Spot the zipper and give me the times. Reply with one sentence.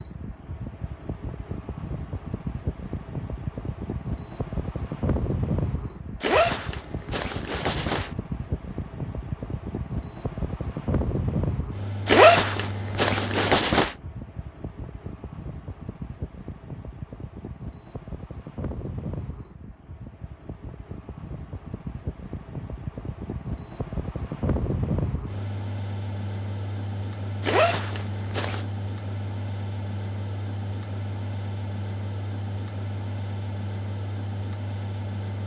The zipper can be heard from 6.2 to 8.1 s, from 12.1 to 13.9 s and from 27.4 to 28.6 s.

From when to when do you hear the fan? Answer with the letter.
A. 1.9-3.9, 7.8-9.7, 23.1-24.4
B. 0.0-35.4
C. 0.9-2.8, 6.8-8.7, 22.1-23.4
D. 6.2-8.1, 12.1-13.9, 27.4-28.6
B.